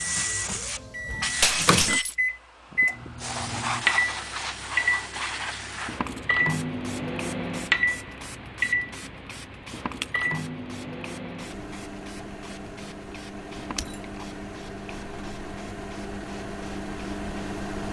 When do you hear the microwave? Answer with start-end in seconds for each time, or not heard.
0.0-17.8.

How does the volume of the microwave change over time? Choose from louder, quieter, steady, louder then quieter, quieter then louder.
quieter.